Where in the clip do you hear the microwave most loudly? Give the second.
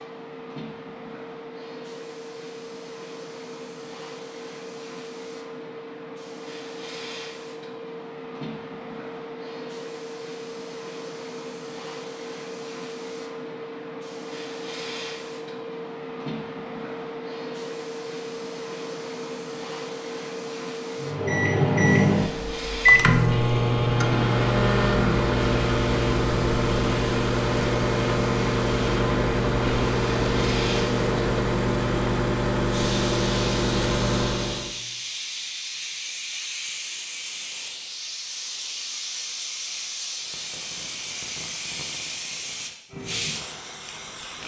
23 s.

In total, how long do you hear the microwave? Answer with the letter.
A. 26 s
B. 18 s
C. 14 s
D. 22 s
C.